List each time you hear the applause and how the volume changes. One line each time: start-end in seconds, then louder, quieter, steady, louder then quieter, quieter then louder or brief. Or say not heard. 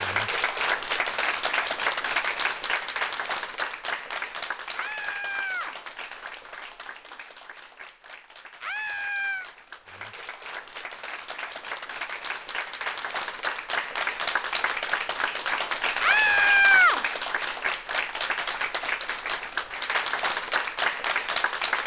0.0-21.8 quieter then louder.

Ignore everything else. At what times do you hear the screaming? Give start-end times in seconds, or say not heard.
4.7-5.7, 8.6-9.5, 16.0-17.0.